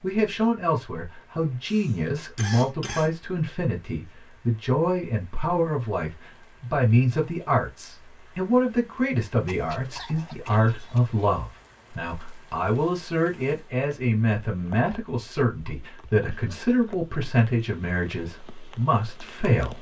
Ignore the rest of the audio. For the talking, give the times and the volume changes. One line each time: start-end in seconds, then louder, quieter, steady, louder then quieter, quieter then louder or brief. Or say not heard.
0.0-19.7 steady.